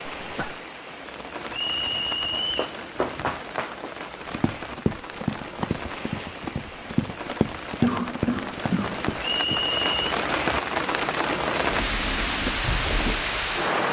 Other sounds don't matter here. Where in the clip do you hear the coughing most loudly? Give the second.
8 s.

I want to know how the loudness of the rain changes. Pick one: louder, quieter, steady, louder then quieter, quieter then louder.
louder.